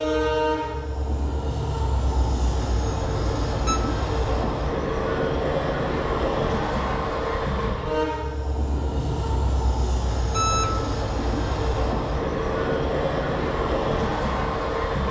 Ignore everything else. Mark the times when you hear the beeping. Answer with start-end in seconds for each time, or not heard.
2.0-3.8, 8.8-10.8.